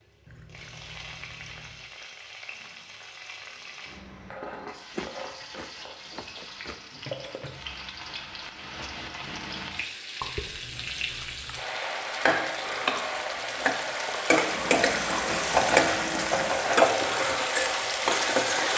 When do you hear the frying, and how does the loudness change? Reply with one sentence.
You can hear the frying from 0.0 to 18.7 s, getting louder.